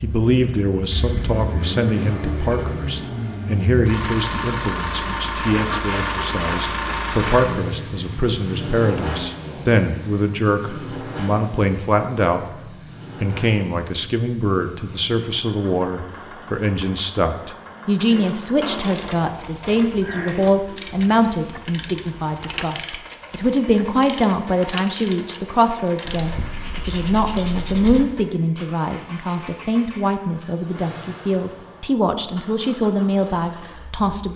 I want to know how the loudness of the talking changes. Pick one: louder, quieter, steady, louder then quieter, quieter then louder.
steady.